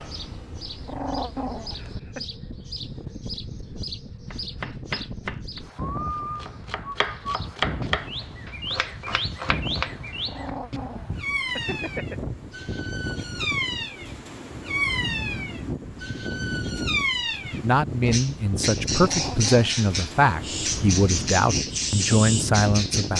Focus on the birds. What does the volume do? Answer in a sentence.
The loudness of the birds goes up.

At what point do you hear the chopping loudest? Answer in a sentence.
The volume of the chopping peaks at 8 seconds.